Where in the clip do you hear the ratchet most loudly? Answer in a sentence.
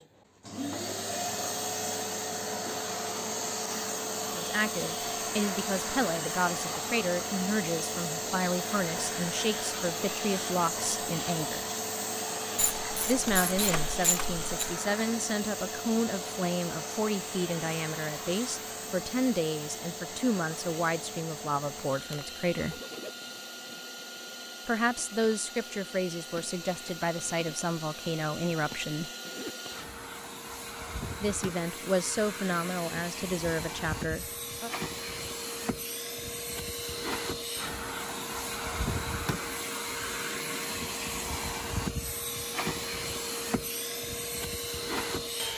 The loudest moment of the ratchet is at 14 seconds.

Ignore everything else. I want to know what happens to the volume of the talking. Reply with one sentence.
The loudness of the talking stays about the same.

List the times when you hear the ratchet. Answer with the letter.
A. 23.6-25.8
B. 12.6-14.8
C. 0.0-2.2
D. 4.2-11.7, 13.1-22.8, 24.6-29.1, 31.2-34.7
B.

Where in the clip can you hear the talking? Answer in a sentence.
You can hear the talking from 4.2 to 11.7 s, from 13.1 to 22.8 s, from 24.6 to 29.1 s and from 31.2 to 34.7 s.